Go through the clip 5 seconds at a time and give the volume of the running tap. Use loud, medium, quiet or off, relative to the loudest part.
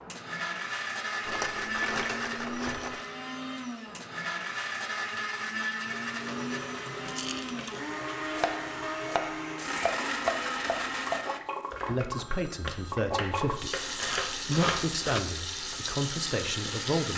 off, medium, loud, loud.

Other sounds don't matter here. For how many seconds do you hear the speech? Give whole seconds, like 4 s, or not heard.
5 s.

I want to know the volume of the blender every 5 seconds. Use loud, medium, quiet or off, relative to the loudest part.
loud, loud, loud, medium.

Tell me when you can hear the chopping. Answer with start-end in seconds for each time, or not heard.
8.3-15.8.